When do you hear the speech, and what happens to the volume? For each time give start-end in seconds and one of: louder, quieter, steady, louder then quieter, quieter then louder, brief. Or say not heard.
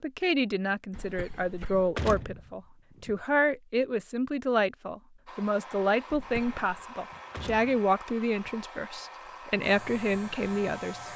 0.0-11.1 steady.